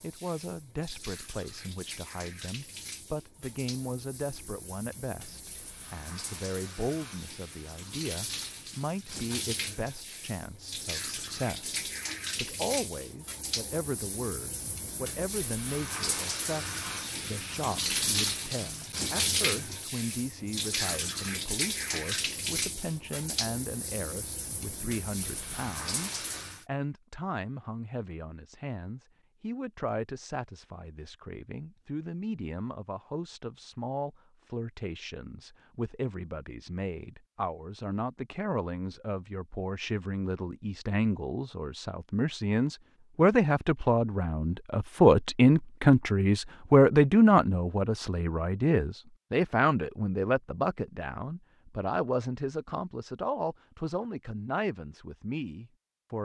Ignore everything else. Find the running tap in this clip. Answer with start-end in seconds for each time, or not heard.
0.0-26.6.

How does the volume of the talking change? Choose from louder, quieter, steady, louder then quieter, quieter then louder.
louder.